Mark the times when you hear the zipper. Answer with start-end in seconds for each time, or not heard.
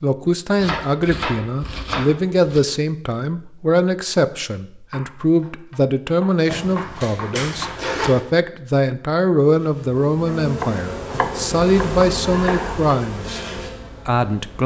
6.5-8.2.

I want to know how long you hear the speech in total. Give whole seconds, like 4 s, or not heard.
14 s.